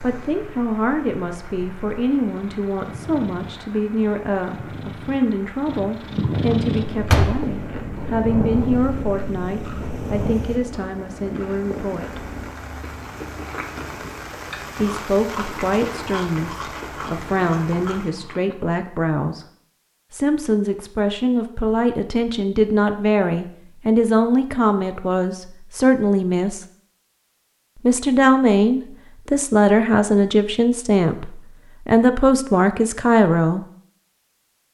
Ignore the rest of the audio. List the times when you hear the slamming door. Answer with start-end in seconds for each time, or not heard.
7.0-7.5.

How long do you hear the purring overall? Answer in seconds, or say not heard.
11 s.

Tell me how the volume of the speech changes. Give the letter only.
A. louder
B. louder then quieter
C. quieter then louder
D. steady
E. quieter
A.